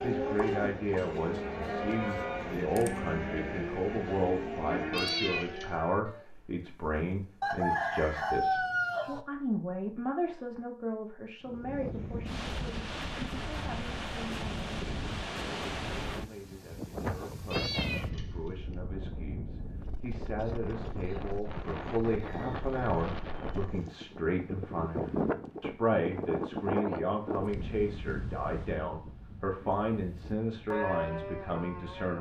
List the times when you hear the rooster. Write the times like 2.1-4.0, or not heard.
7.4-9.2, 21.3-24.1.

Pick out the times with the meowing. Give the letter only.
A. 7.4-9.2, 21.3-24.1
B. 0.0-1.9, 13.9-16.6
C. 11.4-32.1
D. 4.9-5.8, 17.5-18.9
D.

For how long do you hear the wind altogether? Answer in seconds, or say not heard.
21 s.